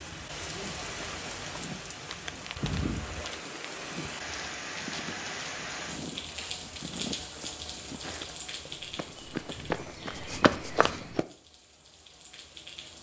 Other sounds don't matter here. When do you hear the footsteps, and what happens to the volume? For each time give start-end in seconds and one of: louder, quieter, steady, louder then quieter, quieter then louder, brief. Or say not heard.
0.6-11.2 louder.